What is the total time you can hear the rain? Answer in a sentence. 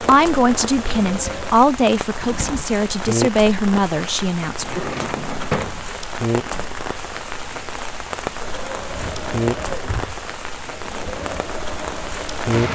You can hear the rain for 13 seconds altogether.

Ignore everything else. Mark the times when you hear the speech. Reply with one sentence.
You can hear the speech from 0.1 to 5.0 s.